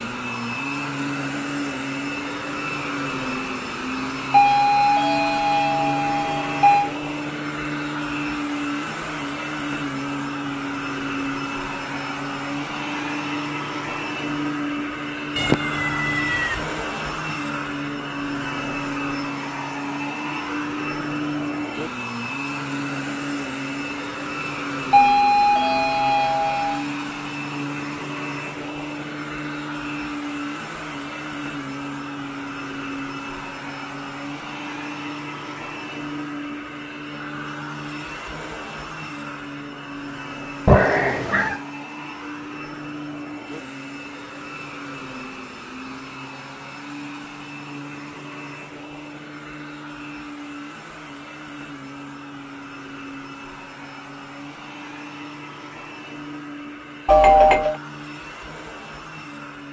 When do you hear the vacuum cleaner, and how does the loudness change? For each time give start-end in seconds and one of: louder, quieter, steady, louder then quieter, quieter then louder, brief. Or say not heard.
0.0-59.6 quieter.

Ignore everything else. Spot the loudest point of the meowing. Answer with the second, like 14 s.
41 s.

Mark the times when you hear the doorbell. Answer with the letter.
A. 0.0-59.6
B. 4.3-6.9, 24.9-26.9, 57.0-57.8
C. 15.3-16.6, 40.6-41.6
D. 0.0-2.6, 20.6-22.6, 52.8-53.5
B.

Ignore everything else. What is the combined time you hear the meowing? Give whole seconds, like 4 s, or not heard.
2 s.